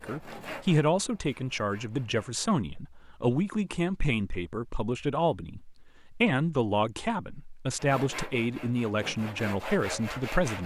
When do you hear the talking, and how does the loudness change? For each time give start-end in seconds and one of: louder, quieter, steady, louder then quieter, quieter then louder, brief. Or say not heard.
0.0-10.6 steady.